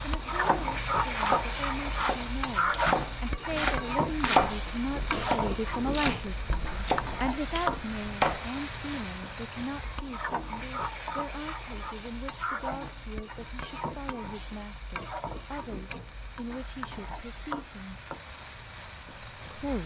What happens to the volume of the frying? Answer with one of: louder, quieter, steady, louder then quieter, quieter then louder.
quieter.